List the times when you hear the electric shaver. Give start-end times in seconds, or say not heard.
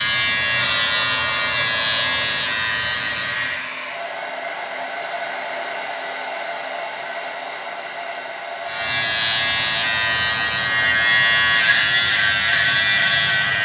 0.0-3.7, 8.6-13.5.